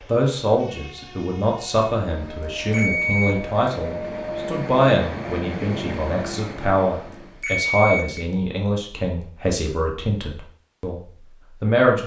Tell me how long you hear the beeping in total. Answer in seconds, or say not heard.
3 s.